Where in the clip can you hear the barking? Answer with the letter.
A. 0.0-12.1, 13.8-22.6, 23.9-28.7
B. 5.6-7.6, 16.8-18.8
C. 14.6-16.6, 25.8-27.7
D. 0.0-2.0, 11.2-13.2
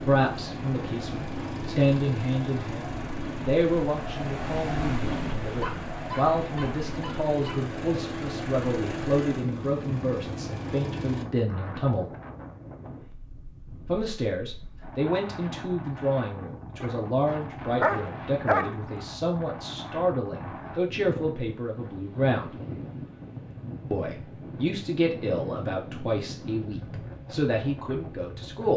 B.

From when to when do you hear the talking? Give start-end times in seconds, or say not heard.
0.0-12.1, 13.8-22.6, 23.9-28.7.